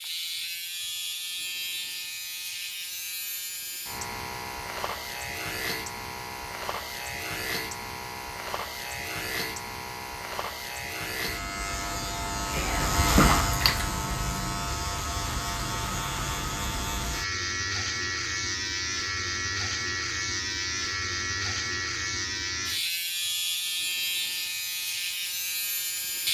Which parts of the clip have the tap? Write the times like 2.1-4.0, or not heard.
12.6-13.8.